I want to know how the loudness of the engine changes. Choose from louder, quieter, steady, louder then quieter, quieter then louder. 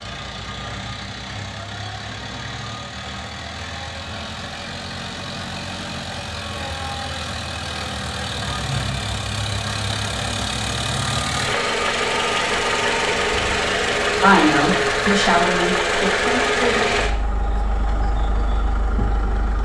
louder.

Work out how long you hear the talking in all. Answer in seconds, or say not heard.
3 s.